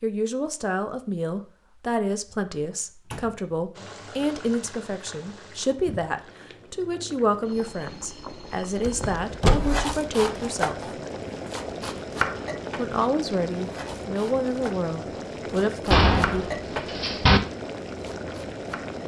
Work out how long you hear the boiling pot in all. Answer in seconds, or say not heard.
15 s.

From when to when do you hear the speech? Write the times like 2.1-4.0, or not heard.
0.0-10.9, 12.8-16.4.